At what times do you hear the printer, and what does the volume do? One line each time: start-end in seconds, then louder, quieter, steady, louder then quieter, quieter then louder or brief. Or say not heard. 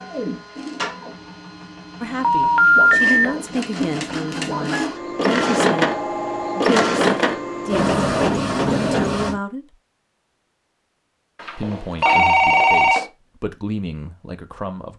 0.0-9.4 louder.